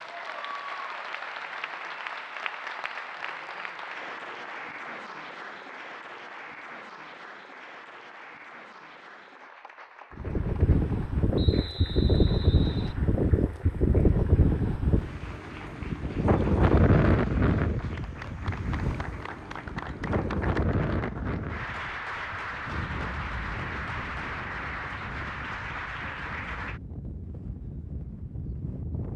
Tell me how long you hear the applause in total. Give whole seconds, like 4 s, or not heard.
27 s.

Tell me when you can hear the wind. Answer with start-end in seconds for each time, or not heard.
10.1-29.1.